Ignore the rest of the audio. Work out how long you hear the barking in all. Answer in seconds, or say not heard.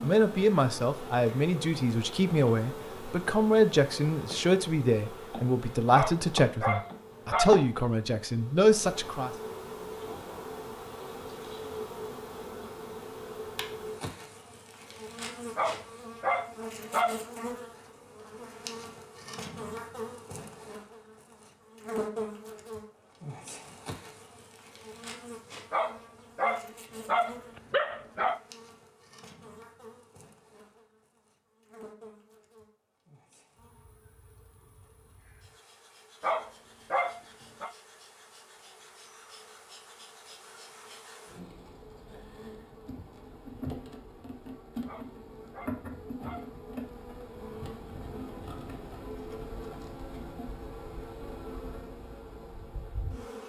9 s.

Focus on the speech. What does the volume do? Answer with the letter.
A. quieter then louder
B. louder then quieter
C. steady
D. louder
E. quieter
C.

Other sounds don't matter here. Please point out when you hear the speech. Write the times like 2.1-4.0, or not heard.
0.0-9.3.